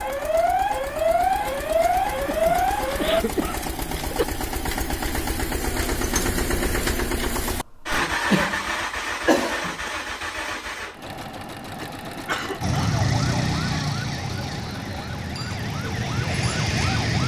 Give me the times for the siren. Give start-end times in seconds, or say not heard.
0.0-3.2, 12.6-17.2.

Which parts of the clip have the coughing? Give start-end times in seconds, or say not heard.
2.2-4.2, 8.0-9.9, 11.8-12.9.